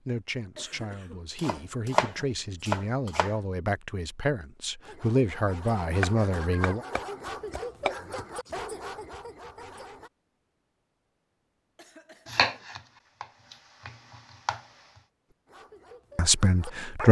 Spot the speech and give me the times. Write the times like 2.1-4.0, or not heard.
0.1-6.8, 16.1-17.0.